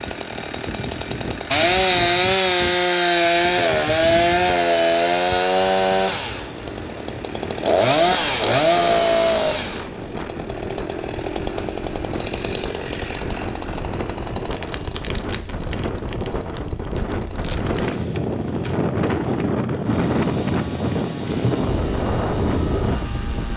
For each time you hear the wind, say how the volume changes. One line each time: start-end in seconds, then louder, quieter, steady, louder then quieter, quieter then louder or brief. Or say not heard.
0.0-23.5 louder.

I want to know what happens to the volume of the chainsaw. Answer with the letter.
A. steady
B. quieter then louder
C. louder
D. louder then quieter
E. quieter
E.